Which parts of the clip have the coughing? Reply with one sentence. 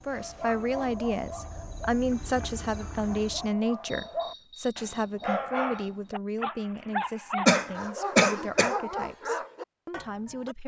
You can hear the coughing from 7.5 to 8.8 s.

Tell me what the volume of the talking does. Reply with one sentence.
The volume of the talking goes down.